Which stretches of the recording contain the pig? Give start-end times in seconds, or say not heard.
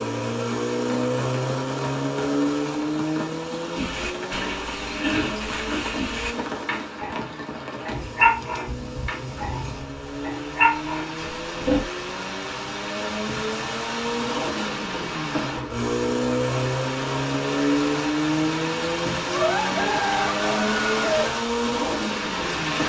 3.7-11.8.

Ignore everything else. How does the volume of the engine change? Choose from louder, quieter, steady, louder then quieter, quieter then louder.
quieter then louder.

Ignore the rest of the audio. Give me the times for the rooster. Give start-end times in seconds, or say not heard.
19.3-21.3.